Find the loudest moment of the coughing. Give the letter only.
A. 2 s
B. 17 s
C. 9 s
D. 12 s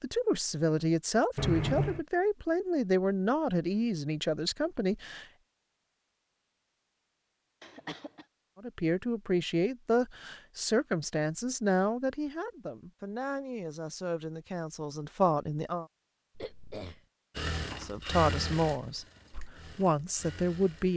A.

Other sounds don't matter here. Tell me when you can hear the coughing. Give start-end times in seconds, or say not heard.
1.4-2.0, 7.6-8.2, 16.4-17.0.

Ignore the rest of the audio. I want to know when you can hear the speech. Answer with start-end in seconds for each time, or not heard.
0.0-5.2, 8.6-15.8, 17.8-20.9.